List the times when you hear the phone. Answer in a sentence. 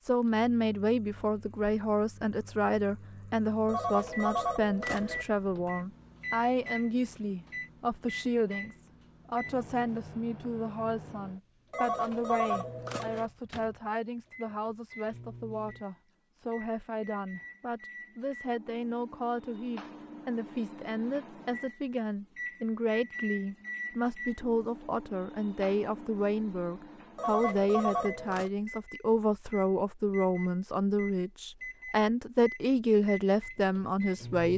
The phone can be heard from 3.6 to 5.2 s, from 11.7 to 13.3 s and from 27.1 to 28.5 s.